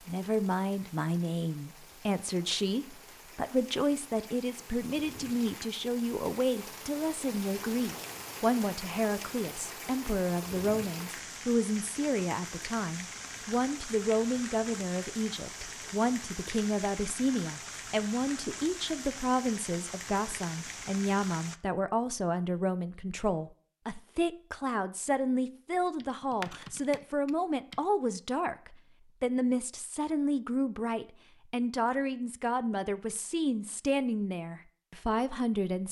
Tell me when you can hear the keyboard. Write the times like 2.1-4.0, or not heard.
26.0-27.8.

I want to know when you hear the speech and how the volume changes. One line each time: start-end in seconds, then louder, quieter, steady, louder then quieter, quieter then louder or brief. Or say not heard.
0.1-35.8 steady.